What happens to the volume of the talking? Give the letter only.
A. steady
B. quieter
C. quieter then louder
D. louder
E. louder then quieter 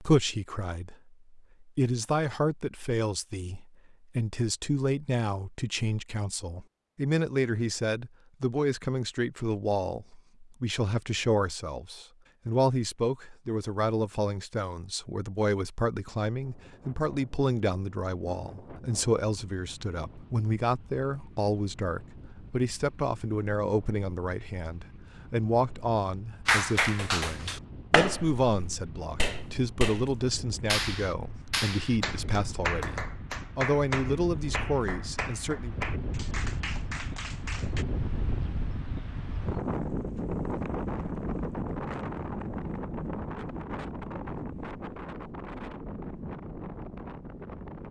A.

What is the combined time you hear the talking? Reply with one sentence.
You can hear the talking for 36 seconds altogether.